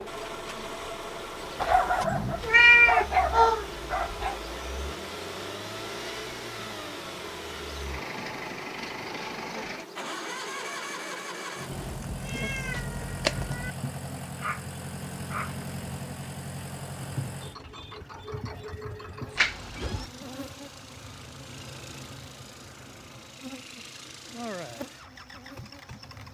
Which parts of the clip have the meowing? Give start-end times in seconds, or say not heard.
2.4-3.7, 11.8-13.7, 19.4-20.1.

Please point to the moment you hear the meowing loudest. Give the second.
3 s.